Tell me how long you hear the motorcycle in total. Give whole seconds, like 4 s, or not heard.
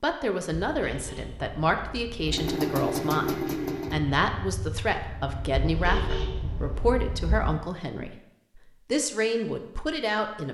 4 s.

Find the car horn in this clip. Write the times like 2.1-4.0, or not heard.
0.5-2.2, 5.5-7.5.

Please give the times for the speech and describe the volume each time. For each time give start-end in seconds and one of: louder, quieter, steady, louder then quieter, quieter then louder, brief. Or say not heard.
0.0-10.4 steady.